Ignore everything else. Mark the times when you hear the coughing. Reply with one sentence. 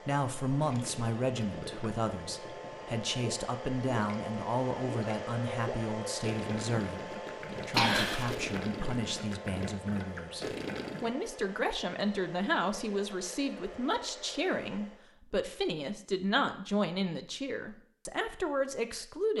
The coughing can be heard from 7.7 to 8.6 s.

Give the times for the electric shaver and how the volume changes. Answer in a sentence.
You can't hear the electric shaver here.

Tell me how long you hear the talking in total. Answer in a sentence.
You can hear the talking for 19 seconds altogether.